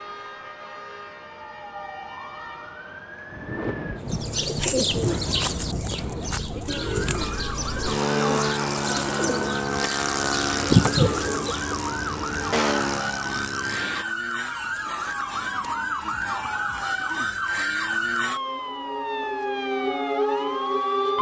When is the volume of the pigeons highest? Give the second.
11 s.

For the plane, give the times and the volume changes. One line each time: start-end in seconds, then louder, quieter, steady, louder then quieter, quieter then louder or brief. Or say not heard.
4.0-14.1 louder.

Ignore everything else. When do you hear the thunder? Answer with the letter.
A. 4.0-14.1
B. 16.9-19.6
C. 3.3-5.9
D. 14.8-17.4
C.